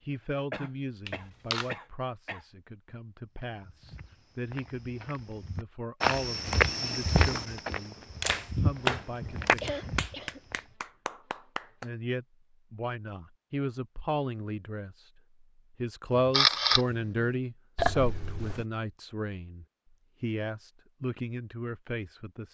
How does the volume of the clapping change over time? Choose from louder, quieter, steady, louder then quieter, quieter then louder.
louder then quieter.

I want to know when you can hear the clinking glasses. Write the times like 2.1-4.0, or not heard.
not heard.